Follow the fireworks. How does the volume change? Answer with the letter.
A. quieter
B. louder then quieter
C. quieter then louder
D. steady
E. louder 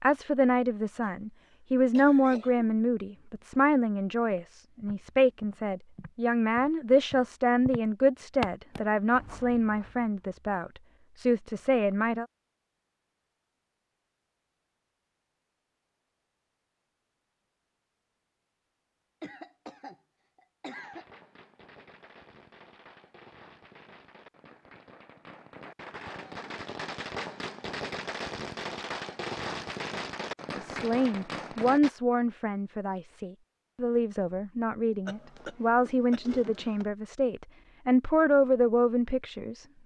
E.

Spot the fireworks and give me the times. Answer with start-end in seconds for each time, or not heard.
20.8-31.9.